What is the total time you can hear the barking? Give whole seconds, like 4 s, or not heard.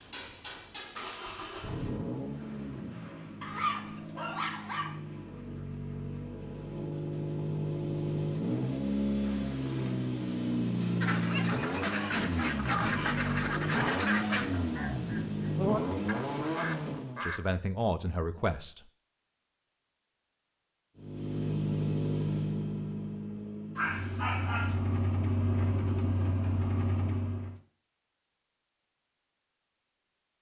5 s.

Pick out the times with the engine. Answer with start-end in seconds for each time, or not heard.
0.0-17.2, 20.9-27.6.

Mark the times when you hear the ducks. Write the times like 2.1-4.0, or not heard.
11.0-17.4.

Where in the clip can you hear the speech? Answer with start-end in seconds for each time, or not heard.
17.2-18.8.